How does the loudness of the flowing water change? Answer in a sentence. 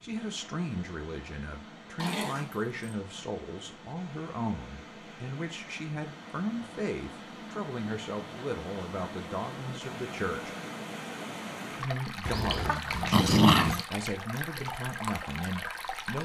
The volume of the flowing water goes up.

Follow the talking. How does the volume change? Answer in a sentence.
The volume of the talking stays about the same.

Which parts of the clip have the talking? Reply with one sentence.
The talking can be heard from 0.0 to 10.6 s and from 11.8 to 16.2 s.